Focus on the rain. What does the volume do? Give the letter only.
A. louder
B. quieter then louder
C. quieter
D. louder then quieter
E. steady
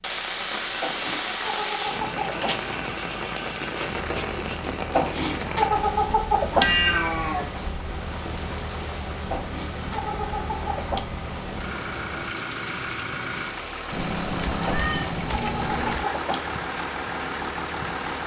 C.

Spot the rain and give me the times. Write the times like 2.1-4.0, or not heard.
0.0-18.2.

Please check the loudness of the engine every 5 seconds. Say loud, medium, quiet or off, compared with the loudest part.
medium, medium, loud, loud.